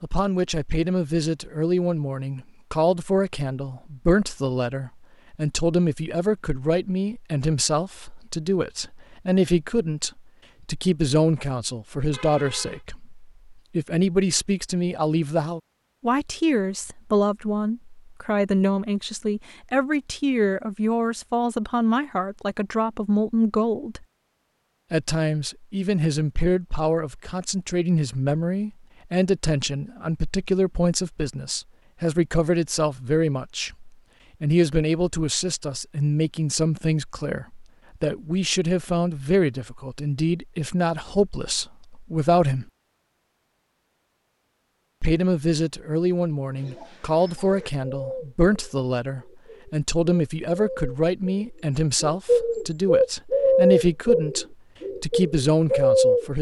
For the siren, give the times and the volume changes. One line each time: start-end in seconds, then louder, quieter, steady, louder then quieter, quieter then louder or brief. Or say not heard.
not heard.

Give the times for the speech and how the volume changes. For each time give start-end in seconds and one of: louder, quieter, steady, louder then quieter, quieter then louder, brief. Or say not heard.
0.0-24.1 steady
24.9-42.6 steady
45.0-56.3 steady.